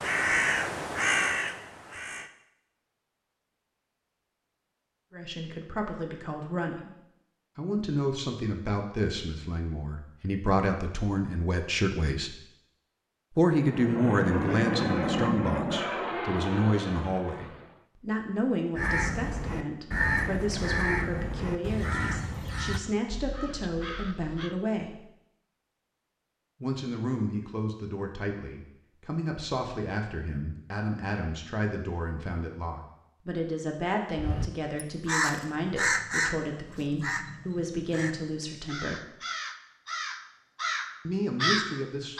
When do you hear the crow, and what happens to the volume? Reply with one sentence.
The crow can be heard briefly from 0.0 to 2.3 s; from 18.8 to 24.6 s, getting quieter; and from 34.1 to 42.1 s, getting quieter then louder.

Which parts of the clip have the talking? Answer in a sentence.
The talking can be heard from 5.1 to 6.9 s, from 7.5 to 12.3 s, from 13.3 to 24.9 s, from 26.6 to 39.0 s and from 41.0 to 42.1 s.